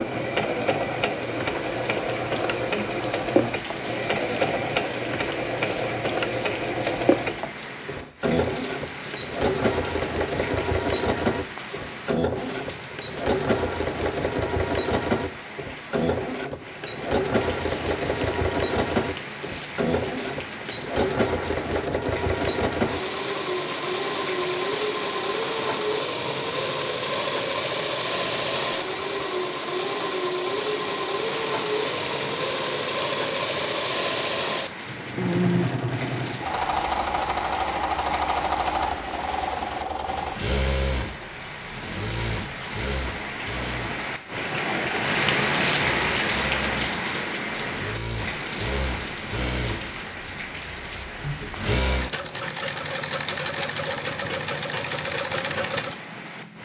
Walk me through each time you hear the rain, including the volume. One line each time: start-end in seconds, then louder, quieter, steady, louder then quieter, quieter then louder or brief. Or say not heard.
0.0-56.6 louder.